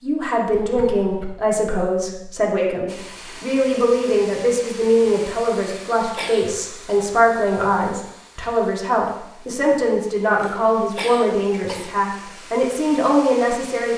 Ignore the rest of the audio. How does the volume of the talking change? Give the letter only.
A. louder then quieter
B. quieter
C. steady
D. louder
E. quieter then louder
C.